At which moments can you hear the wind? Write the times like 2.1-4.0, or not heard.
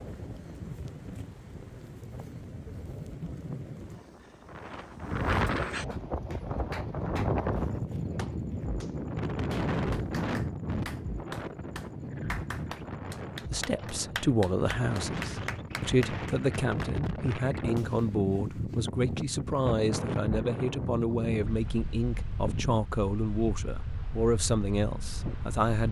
0.0-25.8.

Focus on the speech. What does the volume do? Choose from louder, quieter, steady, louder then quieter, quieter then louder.
steady.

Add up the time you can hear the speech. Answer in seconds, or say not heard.
12 s.